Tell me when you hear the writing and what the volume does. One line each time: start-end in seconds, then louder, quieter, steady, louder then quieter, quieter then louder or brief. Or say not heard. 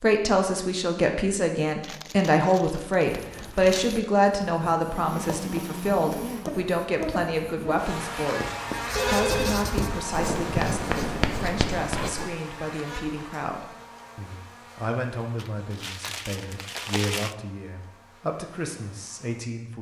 3.0-12.3 louder.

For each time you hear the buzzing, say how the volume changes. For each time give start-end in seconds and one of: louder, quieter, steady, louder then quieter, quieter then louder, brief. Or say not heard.
4.8-19.6 quieter.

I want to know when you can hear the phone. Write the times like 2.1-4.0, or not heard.
8.9-9.7.